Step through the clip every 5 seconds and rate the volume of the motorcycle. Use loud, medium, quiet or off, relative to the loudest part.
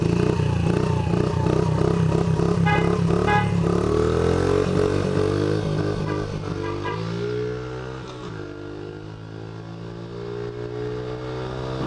loud, medium, medium.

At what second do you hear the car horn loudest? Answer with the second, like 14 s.
3 s.